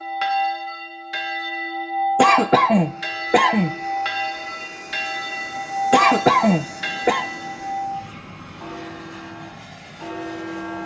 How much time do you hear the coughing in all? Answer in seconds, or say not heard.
3 s.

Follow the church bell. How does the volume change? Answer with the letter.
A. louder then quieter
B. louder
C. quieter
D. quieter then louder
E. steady
C.